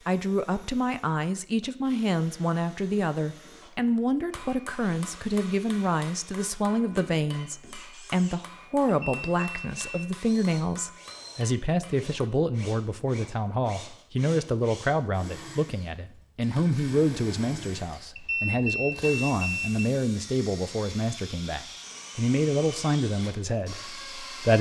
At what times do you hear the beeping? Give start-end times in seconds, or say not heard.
8.8-10.1, 18.1-19.9.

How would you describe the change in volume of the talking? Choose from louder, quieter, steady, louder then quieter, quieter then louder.
steady.